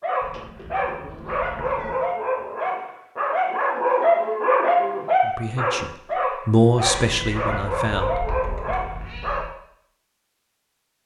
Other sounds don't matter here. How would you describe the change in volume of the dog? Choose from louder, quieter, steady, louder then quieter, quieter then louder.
louder then quieter.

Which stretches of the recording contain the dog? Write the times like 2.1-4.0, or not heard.
0.0-9.4.